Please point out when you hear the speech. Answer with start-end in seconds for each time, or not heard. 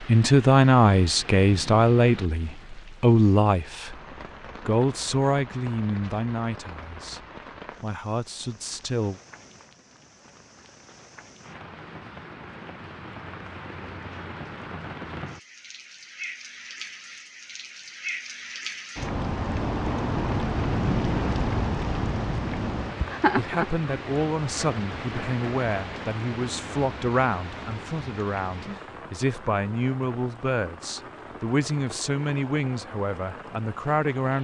0.0-4.0, 4.7-9.2, 23.4-34.3.